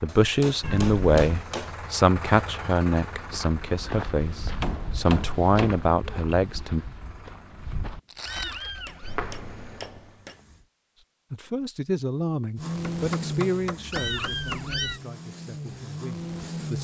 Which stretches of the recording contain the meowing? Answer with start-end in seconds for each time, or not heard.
0.6-1.2, 8.2-9.2, 13.9-15.0.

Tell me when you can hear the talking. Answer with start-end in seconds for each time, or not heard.
0.0-6.8, 11.3-16.7.